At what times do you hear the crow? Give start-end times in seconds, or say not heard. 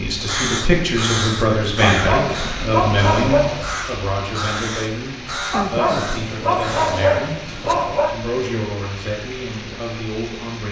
0.2-7.8.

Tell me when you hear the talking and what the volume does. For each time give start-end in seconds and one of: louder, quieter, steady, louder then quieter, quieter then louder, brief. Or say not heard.
0.0-10.6 quieter.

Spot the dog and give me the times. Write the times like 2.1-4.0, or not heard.
1.8-3.7, 5.5-8.2.